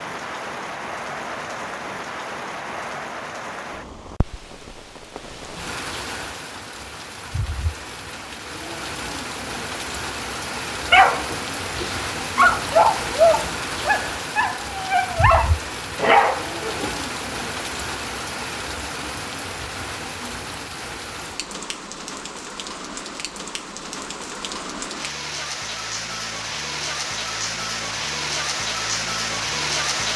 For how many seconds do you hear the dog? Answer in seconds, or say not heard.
6 s.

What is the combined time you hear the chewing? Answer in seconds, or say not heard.
not heard.